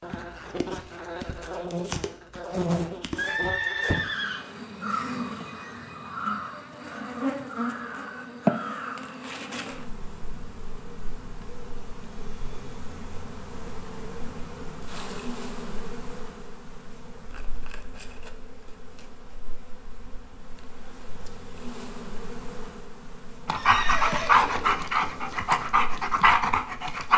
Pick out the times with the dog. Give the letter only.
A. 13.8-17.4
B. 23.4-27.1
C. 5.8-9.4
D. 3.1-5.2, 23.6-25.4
B.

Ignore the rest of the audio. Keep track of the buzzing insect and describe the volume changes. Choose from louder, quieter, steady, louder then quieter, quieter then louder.
quieter.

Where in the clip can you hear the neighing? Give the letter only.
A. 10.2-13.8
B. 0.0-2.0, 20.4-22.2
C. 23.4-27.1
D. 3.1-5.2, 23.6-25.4
D.